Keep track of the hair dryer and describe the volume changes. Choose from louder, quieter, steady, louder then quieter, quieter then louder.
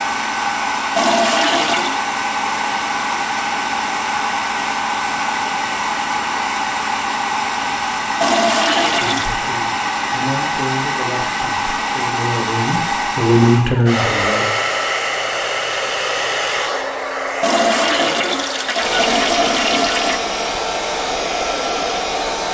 steady.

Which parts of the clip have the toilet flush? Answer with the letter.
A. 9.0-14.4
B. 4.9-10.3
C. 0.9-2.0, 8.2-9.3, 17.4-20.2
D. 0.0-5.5
C.